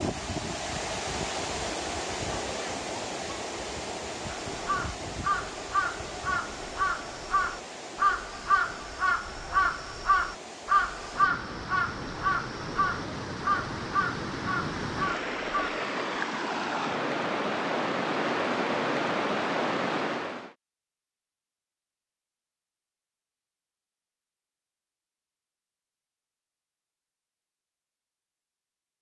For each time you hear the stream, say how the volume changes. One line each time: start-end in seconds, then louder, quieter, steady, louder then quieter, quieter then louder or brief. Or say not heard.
0.0-20.6 quieter then louder.